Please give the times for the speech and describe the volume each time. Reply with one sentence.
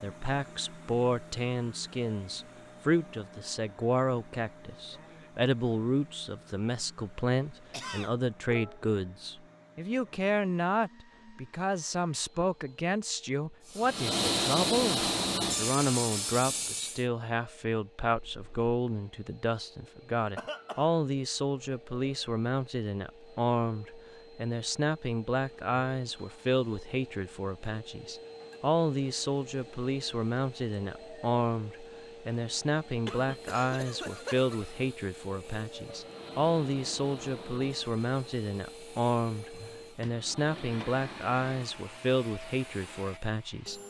The speech can be heard from 0.0 to 43.8 s, at a steady volume.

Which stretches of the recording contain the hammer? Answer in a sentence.
The hammer can't be heard in this clip.